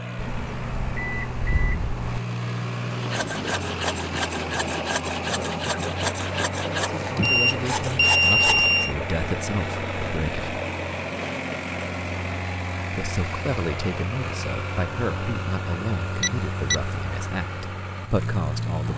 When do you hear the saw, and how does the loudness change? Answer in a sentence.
You can hear the saw from 3.0 to 8.7 s, at a steady volume.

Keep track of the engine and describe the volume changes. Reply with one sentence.
The loudness of the engine stays about the same.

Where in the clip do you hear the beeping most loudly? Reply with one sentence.
The volume of the beeping peaks at 8 seconds.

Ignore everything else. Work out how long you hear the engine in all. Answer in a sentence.
The engine can be heard for 19 seconds in total.